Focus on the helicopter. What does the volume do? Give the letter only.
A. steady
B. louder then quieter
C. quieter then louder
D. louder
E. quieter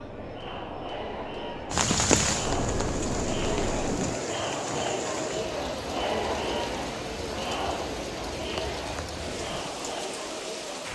D.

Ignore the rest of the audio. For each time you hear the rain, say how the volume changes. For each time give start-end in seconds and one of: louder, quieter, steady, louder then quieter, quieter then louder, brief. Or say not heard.
1.7-10.9 quieter.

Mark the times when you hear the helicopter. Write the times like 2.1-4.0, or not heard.
0.0-4.2.